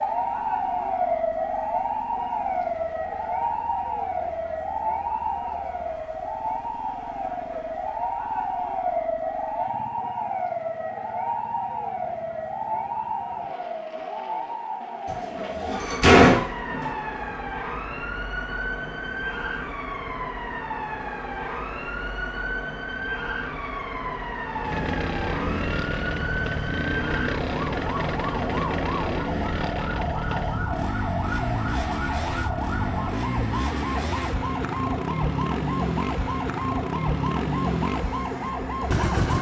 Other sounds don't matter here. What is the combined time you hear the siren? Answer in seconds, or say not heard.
39 s.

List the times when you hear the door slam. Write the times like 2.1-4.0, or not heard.
15.1-16.9.